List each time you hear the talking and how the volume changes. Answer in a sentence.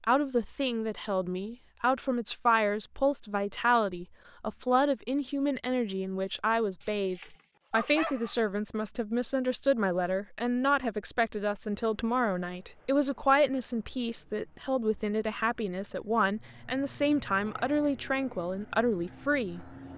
The talking can be heard from 0.0 to 19.7 s, at a steady volume.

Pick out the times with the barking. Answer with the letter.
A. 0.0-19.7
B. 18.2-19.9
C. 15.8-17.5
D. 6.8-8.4
D.